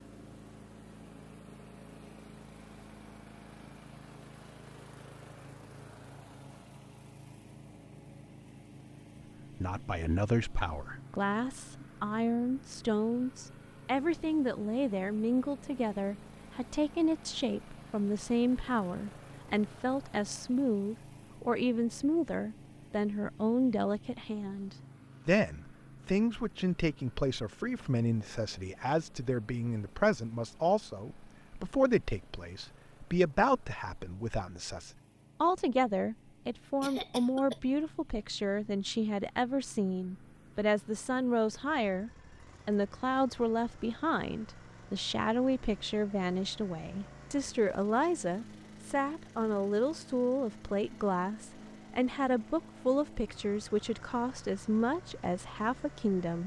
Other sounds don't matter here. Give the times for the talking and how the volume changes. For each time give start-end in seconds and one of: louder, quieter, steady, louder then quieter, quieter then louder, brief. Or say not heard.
9.6-56.4 steady.